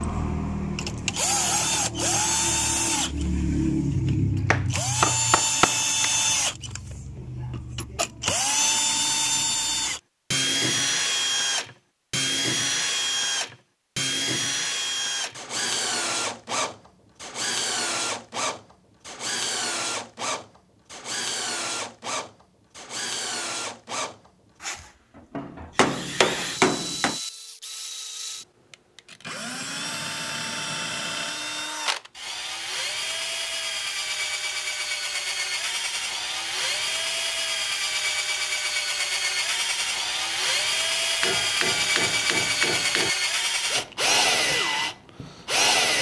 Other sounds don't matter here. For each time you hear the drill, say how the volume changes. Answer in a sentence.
The drill can be heard from 0.0 to 45.9 s, getting quieter then louder.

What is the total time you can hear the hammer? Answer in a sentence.
The hammer can be heard for 5 seconds in total.